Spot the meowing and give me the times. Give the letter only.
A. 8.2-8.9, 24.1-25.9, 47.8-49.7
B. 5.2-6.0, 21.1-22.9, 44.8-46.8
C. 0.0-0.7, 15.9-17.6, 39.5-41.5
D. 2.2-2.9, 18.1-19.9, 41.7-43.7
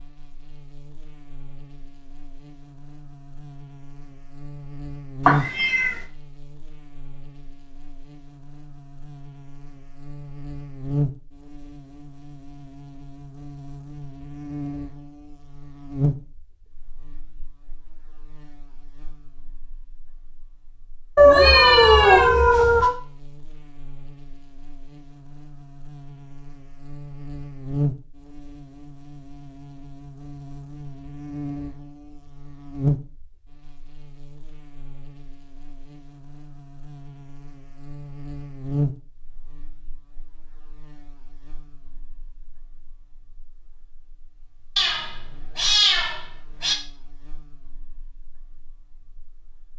B.